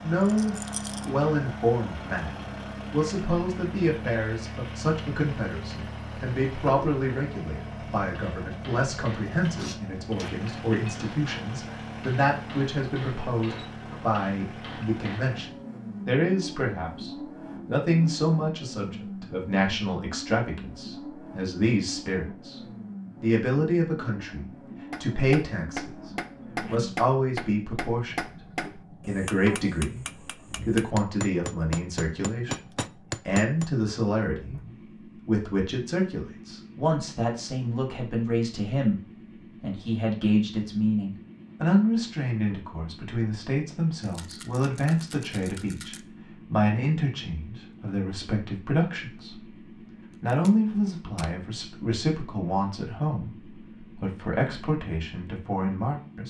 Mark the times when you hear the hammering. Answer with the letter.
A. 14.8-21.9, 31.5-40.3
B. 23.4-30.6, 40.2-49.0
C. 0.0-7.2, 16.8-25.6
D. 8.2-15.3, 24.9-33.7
D.